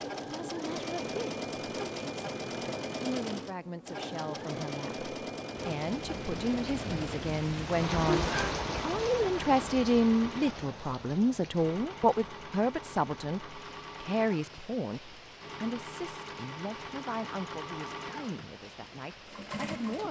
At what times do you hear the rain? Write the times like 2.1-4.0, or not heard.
5.8-20.0.